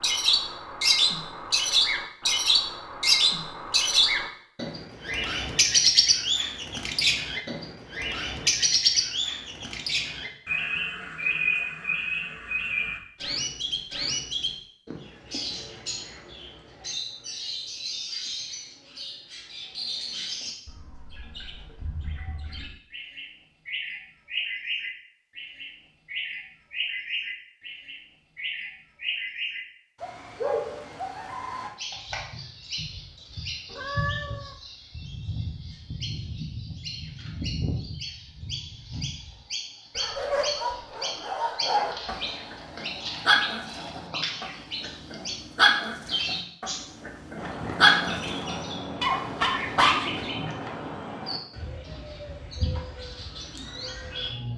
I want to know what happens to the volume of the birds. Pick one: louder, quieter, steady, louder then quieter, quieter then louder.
quieter.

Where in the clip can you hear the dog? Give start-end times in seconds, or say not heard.
40.0-50.2.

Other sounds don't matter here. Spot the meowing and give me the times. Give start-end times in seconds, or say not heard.
33.6-34.5.